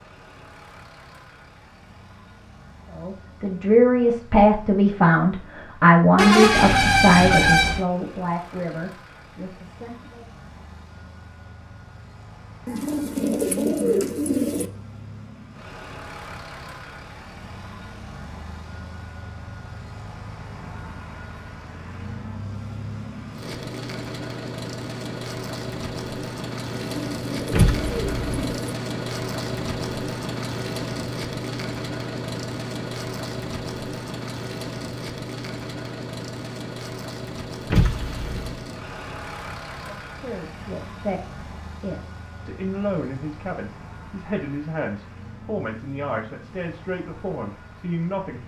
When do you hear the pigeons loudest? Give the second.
14 s.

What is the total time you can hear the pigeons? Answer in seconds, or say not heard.
4 s.